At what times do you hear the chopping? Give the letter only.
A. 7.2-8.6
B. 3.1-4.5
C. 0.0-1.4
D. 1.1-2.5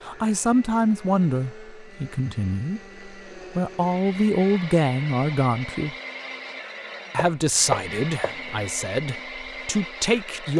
A.